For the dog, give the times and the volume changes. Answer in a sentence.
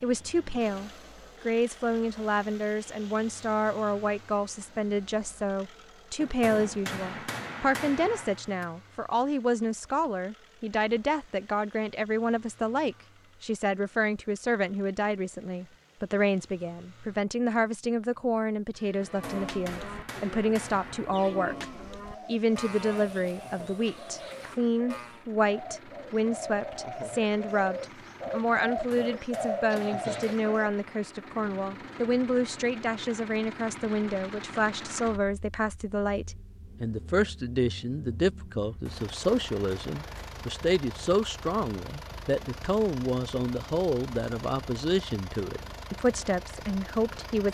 The dog can't be heard in this clip.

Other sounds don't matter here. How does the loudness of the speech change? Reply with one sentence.
The volume of the speech stays about the same.